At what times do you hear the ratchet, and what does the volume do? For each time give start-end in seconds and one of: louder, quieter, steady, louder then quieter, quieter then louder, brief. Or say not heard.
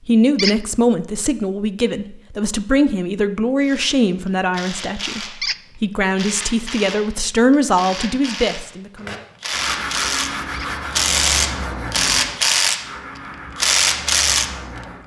3.6-5.5 brief
6.2-12.9 louder
13.6-14.6 brief.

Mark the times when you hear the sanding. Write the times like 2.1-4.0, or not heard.
8.9-15.0.